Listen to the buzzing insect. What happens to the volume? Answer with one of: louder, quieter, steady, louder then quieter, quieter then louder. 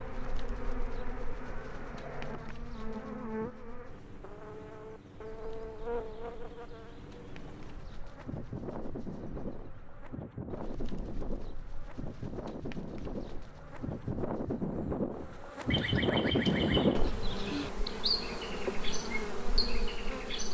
louder.